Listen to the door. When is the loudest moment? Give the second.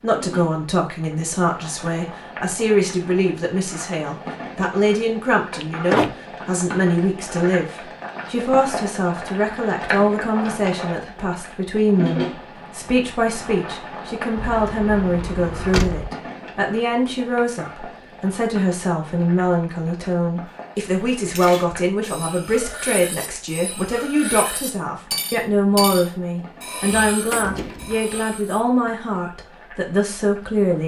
6 s.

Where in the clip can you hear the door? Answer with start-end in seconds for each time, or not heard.
5.6-6.2, 14.3-16.1, 26.4-28.1.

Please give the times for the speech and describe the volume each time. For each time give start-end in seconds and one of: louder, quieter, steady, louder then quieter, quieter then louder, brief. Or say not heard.
0.0-30.8 steady.